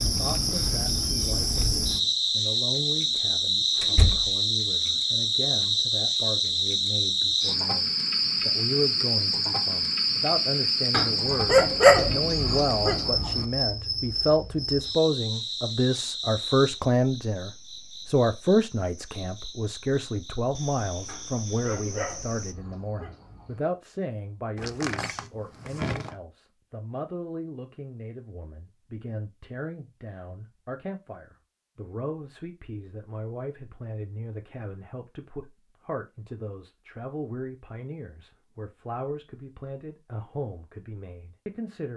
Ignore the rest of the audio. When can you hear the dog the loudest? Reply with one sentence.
The loudest moment of the dog is at 12 seconds.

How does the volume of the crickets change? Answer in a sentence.
The volume of the crickets goes down.